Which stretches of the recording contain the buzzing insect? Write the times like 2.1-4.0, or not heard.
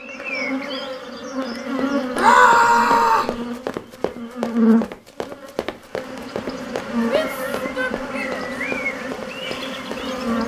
0.0-10.4.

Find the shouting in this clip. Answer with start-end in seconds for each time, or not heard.
2.1-3.4, 7.1-8.4.